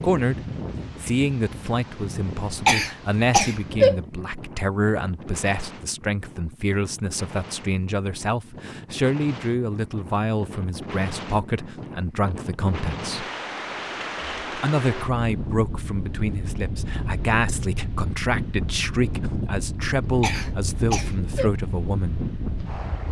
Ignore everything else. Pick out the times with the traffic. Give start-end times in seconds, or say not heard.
not heard.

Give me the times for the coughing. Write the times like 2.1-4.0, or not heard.
2.6-4.0, 20.2-21.5.